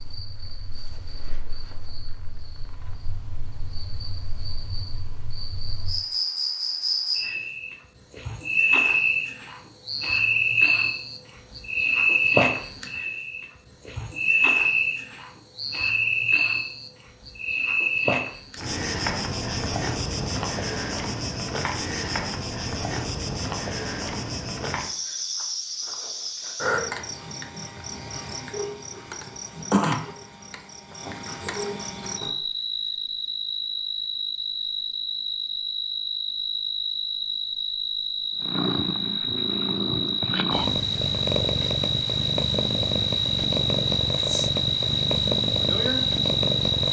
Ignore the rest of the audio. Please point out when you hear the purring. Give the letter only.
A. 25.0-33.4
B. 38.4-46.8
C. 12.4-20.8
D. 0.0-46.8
B.